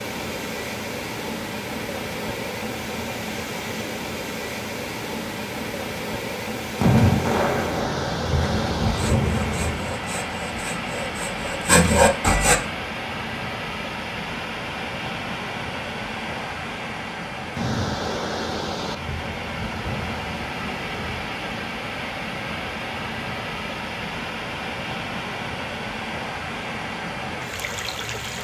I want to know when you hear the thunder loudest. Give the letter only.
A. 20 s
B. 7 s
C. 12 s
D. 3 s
B.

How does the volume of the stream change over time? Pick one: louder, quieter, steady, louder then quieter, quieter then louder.
steady.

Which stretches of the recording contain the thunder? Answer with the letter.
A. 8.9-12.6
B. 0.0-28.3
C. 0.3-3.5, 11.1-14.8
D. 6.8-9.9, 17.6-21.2
D.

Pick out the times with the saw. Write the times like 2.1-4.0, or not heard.
8.9-12.6.